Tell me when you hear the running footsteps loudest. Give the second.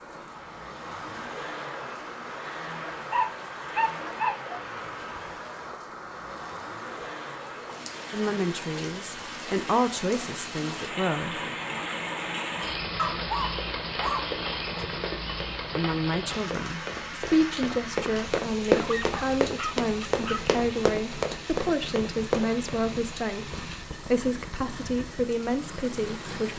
19 s.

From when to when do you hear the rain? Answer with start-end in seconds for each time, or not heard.
0.0-26.5.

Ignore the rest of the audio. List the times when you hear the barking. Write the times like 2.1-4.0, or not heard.
2.9-4.7, 12.9-15.0, 18.7-20.6.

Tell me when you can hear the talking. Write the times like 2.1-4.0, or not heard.
8.1-11.4, 15.8-26.5.